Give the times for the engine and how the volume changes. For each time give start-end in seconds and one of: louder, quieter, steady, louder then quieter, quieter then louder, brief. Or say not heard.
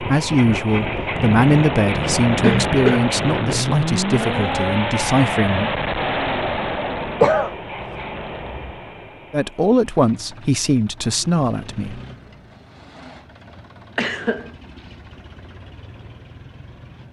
0.0-17.0 quieter.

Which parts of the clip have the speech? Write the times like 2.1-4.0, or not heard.
0.0-5.7, 9.3-12.0.